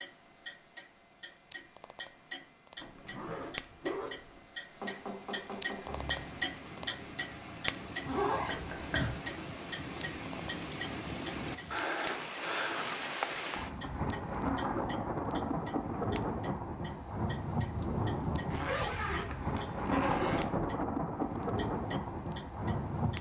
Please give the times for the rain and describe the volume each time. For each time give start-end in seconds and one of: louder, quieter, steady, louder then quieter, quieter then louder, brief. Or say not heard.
5.8-23.1 louder.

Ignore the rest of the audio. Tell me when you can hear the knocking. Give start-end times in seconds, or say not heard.
4.8-6.0, 8.4-9.1, 20.1-20.8.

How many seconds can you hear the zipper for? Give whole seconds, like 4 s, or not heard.
5 s.